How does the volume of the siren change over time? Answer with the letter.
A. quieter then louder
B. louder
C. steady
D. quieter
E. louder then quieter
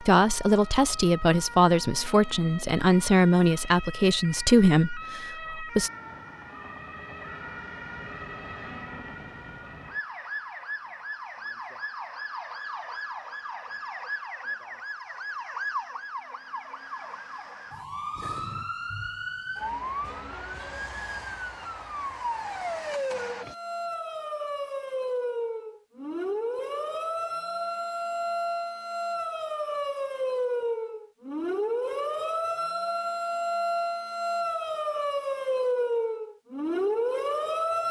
B.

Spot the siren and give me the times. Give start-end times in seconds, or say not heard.
0.0-37.8.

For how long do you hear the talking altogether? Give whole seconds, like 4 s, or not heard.
6 s.